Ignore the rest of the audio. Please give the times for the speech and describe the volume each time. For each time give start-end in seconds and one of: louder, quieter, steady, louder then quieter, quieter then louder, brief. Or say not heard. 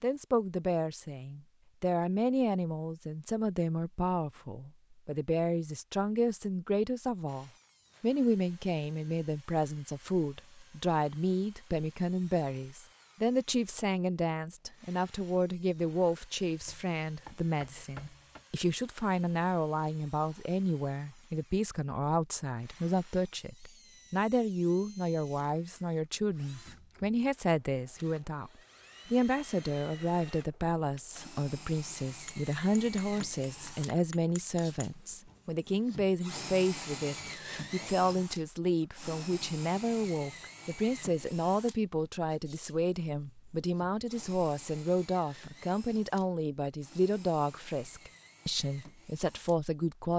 0.0-50.1 steady.